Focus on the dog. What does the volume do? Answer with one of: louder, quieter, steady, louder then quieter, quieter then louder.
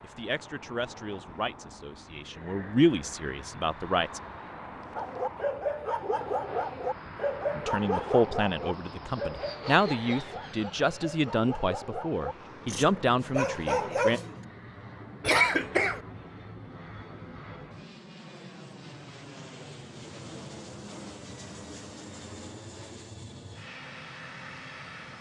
quieter then louder.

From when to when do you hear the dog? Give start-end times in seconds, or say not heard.
5.0-14.4.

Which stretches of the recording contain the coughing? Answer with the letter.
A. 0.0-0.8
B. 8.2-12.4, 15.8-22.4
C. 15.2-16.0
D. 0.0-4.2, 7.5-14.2
C.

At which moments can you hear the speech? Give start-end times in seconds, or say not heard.
0.0-4.2, 7.5-14.2.